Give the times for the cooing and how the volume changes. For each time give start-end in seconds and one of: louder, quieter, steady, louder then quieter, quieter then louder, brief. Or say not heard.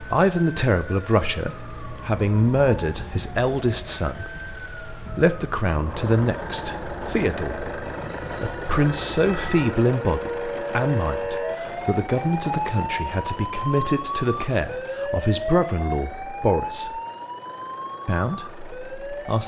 not heard.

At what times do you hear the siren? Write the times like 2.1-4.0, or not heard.
0.0-19.4.